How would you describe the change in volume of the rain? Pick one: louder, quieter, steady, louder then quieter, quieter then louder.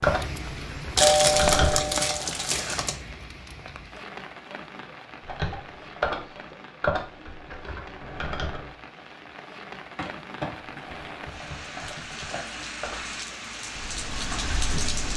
quieter then louder.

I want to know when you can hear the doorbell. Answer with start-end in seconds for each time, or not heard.
1.0-2.2.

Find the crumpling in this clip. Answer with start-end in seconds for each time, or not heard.
0.9-3.0, 9.9-12.7.